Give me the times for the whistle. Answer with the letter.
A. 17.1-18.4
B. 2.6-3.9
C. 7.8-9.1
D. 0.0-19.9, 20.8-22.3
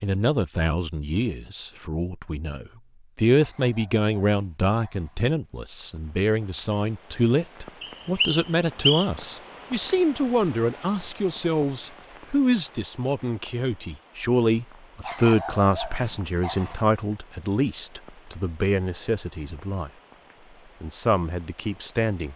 C.